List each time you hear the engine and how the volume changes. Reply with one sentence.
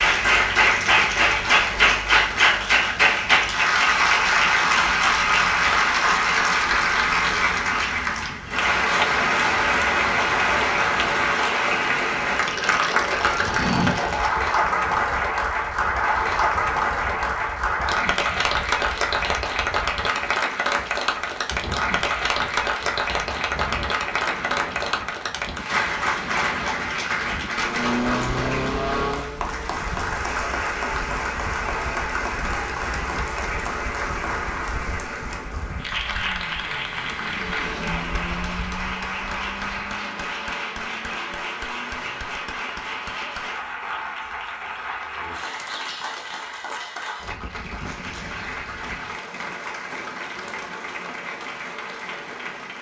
You can hear the engine briefly from 27.6 to 29.9 s; and from 36.1 to 42.2 s, getting louder then quieter.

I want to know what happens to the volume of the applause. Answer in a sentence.
The loudness of the applause goes down.